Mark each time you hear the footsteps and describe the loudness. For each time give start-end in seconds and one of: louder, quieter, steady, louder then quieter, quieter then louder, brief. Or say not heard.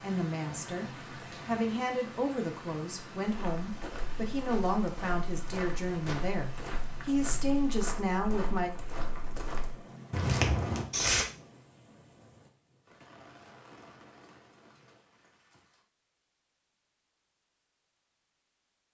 3.2-11.2 louder.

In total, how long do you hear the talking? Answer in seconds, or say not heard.
9 s.